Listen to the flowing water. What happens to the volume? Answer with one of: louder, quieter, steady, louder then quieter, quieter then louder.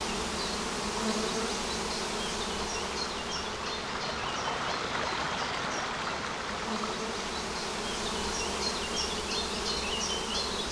louder then quieter.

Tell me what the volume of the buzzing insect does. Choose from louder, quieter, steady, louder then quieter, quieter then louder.
quieter then louder.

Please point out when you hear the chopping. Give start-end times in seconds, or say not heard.
not heard.